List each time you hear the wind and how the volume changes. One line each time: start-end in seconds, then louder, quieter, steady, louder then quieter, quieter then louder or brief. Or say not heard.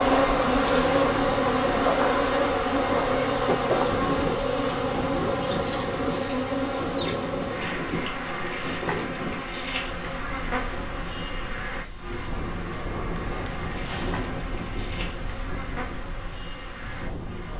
0.0-17.5 quieter.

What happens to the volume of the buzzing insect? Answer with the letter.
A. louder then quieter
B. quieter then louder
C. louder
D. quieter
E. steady
D.